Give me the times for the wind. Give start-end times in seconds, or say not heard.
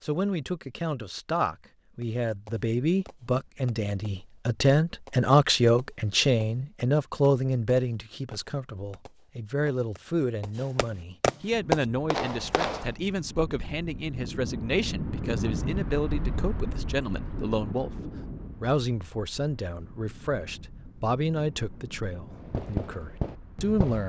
11.5-23.8.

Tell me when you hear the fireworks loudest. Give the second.
12 s.